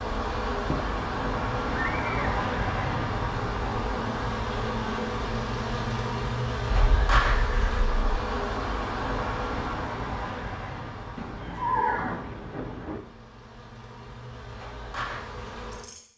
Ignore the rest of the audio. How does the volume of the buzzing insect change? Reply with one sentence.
The loudness of the buzzing insect goes down.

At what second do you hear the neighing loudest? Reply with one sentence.
The volume of the neighing peaks at 12 seconds.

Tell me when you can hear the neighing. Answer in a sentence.
You can hear the neighing from 0.7 to 2.5 s, from 6.7 to 8.2 s and from 11.2 to 13.0 s.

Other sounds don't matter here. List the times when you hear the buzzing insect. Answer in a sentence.
You can hear the buzzing insect from 0.0 to 16.0 s.